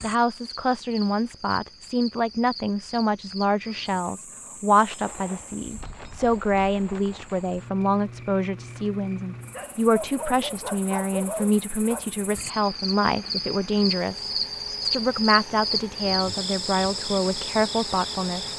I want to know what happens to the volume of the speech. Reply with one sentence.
The loudness of the speech stays about the same.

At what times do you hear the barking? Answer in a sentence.
You can hear the barking from 9.5 to 12.1 s.